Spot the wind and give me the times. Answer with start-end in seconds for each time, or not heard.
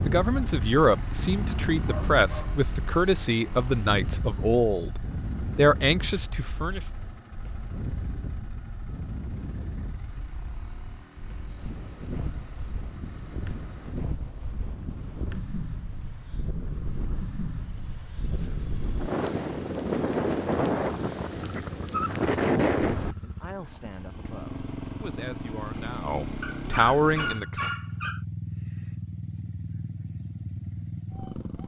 0.0-23.1.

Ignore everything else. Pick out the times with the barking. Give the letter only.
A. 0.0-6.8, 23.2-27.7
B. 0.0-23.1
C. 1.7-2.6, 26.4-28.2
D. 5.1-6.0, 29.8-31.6
C.